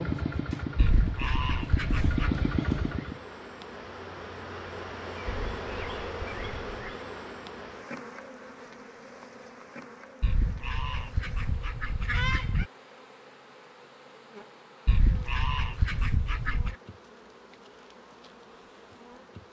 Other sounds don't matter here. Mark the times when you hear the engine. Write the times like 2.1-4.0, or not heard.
0.0-3.2.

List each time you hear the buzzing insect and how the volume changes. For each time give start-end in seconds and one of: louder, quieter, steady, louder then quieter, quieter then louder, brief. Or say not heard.
0.1-19.4 louder then quieter.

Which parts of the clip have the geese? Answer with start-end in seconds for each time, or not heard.
0.8-2.4, 5.2-6.9, 10.2-12.7, 14.8-16.8.